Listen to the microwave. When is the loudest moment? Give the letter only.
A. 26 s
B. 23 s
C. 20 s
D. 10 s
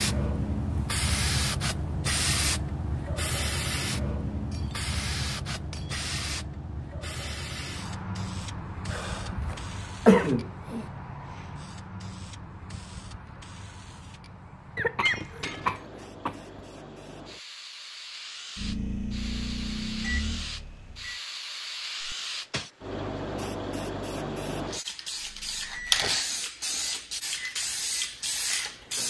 C.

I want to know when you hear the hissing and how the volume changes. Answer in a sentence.
You can hear the hissing from 0.0 to 29.0 s, getting quieter then louder.